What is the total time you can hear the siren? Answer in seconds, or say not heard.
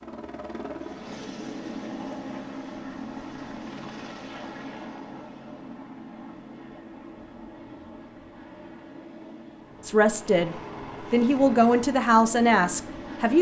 not heard.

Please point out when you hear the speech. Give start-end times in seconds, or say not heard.
9.8-13.3.